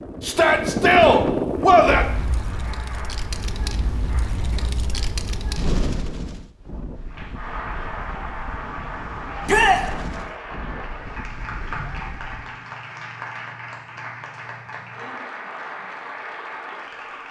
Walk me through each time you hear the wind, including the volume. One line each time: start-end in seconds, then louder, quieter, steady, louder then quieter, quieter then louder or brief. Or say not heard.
0.0-12.7 quieter.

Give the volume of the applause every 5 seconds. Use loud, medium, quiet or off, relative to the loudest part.
medium, loud, loud, loud.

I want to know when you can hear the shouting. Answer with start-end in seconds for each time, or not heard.
0.2-2.0, 9.4-9.8.